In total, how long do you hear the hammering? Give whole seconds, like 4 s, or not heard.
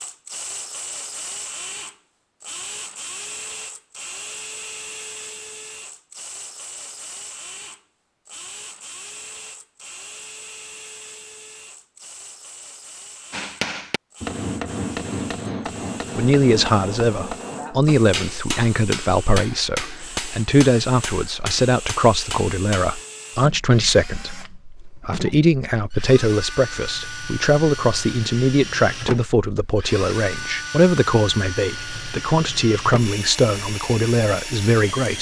10 s.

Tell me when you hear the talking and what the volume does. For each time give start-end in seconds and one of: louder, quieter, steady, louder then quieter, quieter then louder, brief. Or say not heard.
16.1-35.1 steady.